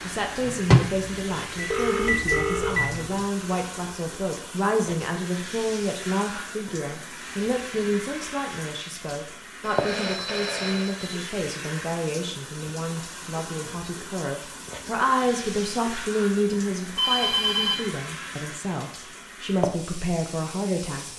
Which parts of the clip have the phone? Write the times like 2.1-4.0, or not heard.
1.1-2.8, 9.6-11.2, 16.9-17.8.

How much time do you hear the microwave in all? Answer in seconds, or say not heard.
3 s.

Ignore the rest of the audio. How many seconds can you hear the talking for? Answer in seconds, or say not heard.
21 s.